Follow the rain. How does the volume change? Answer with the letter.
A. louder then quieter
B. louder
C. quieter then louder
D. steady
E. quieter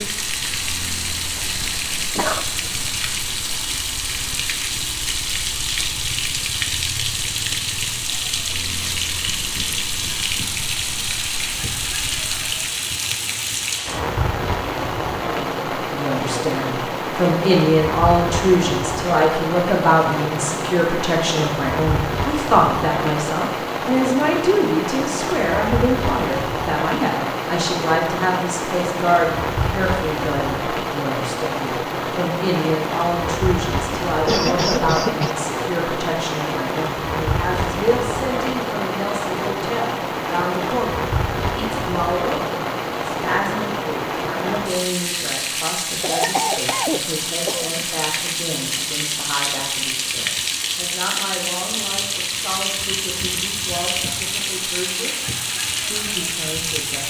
D.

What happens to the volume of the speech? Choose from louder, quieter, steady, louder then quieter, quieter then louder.
quieter.